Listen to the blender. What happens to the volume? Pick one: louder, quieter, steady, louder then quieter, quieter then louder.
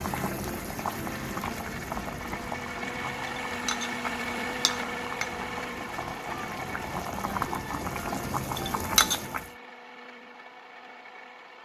louder then quieter.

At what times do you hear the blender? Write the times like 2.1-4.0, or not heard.
0.0-11.5.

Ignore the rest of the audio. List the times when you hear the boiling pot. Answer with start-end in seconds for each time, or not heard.
0.0-9.5.